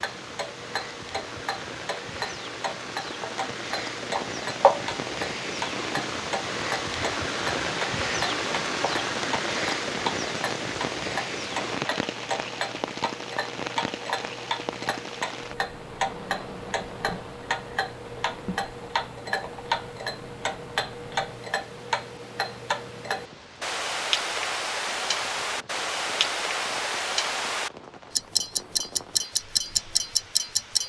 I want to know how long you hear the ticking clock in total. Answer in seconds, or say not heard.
31 s.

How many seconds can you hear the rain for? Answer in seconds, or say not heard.
31 s.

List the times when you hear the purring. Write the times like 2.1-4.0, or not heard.
not heard.